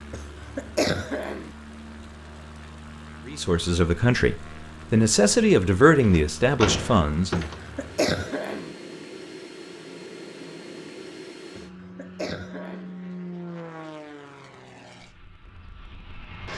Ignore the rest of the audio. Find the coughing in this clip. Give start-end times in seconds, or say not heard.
0.1-1.6, 7.5-8.8, 11.6-12.9.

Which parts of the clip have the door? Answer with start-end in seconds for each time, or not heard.
6.0-7.6.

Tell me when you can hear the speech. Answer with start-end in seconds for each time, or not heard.
3.2-7.5.